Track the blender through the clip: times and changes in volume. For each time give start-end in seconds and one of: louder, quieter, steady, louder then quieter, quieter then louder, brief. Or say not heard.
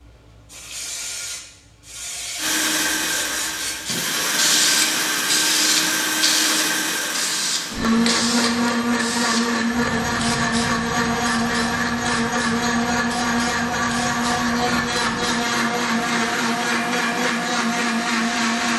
2.4-18.7 steady.